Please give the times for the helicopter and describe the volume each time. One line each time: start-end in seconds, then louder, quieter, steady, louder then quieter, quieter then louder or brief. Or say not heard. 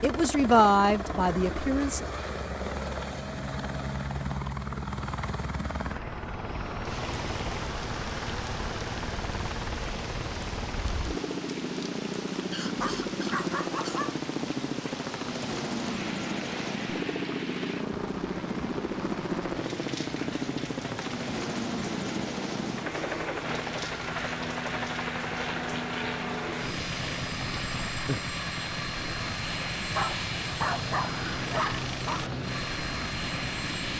0.0-33.9 steady.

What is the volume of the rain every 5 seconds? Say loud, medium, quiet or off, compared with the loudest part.
off, loud, loud, loud, loud, loud, loud.